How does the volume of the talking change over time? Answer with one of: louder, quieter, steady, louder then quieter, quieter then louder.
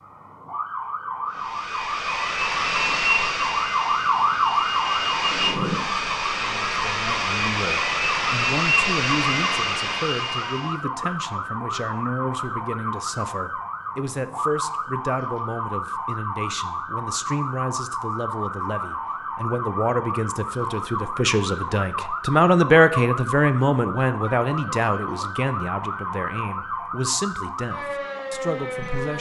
louder then quieter.